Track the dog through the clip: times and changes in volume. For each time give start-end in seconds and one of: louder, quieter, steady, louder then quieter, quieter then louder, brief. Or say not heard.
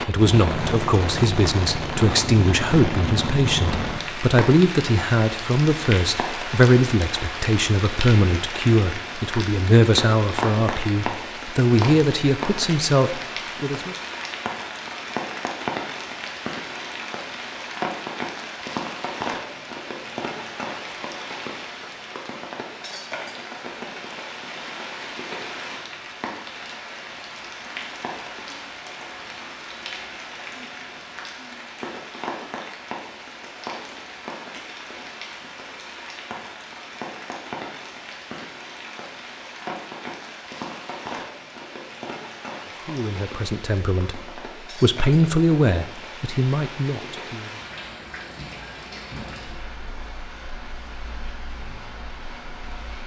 not heard.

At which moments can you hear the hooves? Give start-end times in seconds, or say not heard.
not heard.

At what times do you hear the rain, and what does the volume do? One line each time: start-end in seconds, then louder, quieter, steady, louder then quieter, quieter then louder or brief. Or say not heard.
0.0-53.0 quieter.